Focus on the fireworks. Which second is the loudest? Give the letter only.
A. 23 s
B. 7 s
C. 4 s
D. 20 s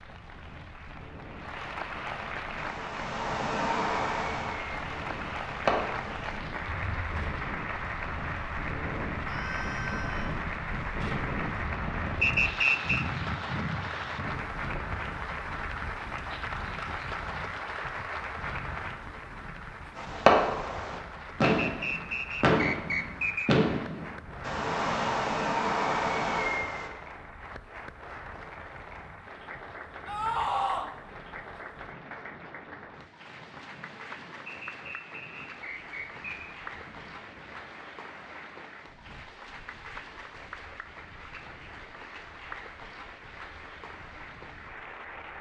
D.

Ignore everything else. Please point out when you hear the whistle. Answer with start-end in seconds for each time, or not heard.
12.2-13.1, 21.4-23.5, 34.5-36.5.